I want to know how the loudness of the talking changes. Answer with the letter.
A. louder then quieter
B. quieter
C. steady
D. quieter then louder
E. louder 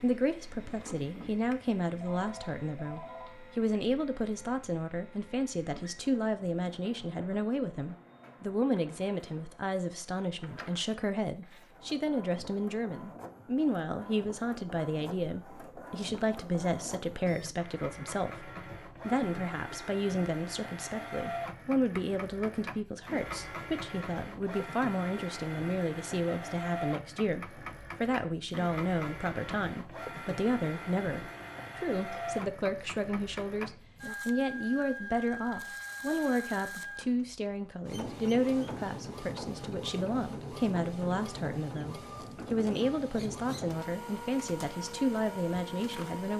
C.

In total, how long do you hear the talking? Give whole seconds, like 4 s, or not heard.
46 s.